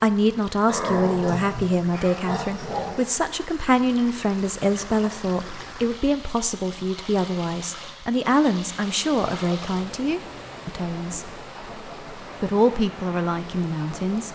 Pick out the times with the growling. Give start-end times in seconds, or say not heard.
0.7-3.1.